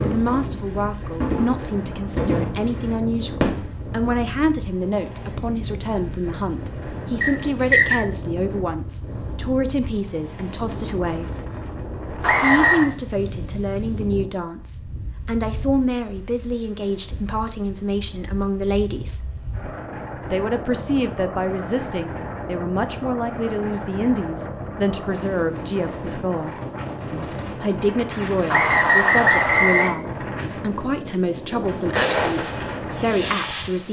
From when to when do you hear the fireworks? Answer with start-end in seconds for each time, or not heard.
0.0-3.9, 31.8-33.8.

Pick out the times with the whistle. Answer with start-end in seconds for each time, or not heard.
7.2-8.0, 12.2-12.9, 28.5-29.9.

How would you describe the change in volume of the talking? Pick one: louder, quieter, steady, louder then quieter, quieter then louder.
steady.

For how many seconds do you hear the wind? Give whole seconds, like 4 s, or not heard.
34 s.